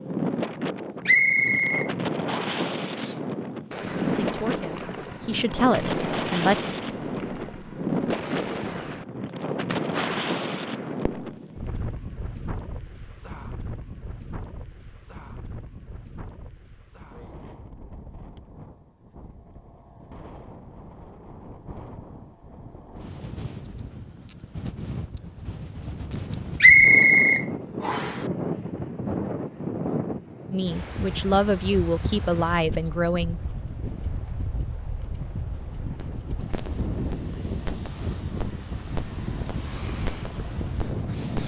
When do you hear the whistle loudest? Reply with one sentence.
The volume of the whistle peaks at 27 seconds.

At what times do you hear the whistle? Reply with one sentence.
The whistle can be heard from 1.1 to 2.6 s and from 26.6 to 28.2 s.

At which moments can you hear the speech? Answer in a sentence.
You can hear the speech from 4.2 to 6.5 s and from 30.5 to 33.5 s.